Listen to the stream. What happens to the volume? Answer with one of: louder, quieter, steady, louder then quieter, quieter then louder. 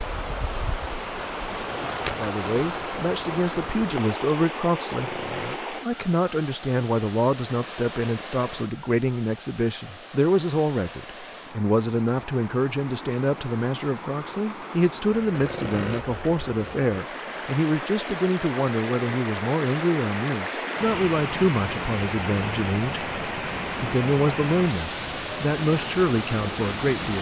quieter then louder.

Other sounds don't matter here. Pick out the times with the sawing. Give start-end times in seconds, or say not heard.
4.9-5.6, 15.3-16.1.